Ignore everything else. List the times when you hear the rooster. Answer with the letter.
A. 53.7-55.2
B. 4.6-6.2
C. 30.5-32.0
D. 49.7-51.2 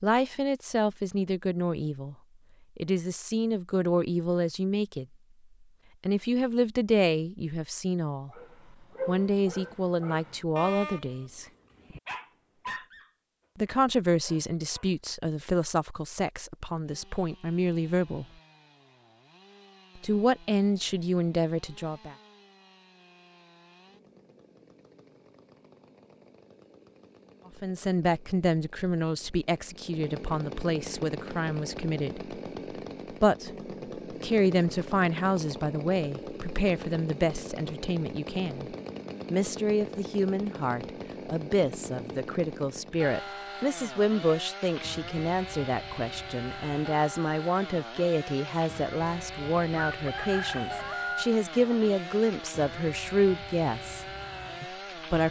D.